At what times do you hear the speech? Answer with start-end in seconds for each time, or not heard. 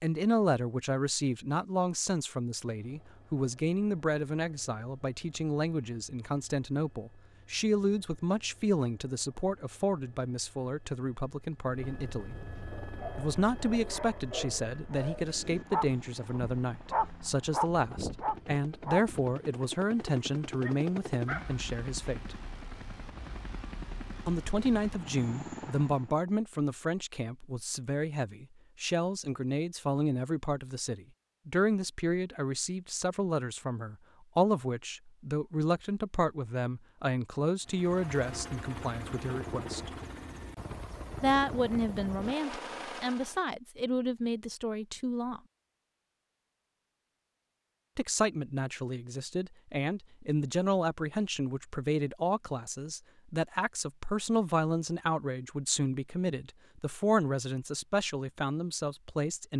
0.0-12.3, 13.2-22.4, 24.2-39.9, 41.2-45.4, 48.0-59.5.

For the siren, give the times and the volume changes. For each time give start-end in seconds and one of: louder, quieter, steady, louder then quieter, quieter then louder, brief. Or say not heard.
not heard.